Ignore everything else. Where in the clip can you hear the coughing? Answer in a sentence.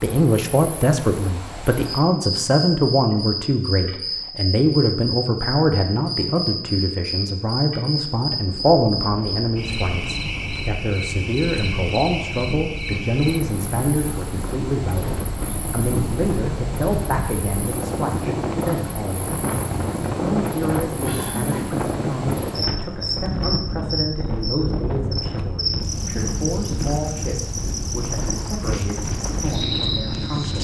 You can hear the coughing from 21.0 to 21.8 s.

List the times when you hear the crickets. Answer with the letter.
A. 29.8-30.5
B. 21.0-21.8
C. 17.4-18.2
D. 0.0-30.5
D.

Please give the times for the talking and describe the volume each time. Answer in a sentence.
The talking can be heard from 0.0 to 30.5 s, getting quieter.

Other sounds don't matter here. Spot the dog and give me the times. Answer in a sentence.
You can't hear the dog here.